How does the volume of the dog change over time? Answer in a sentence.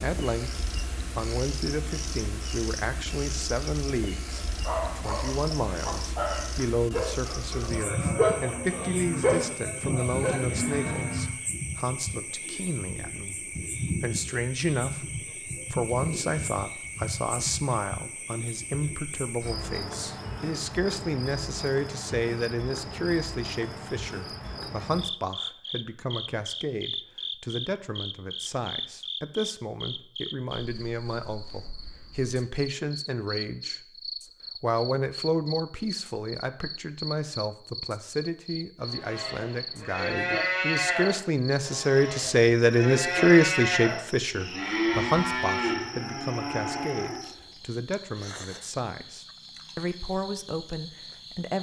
The volume of the dog goes up.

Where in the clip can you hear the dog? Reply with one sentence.
You can hear the dog from 4.3 to 10.4 s.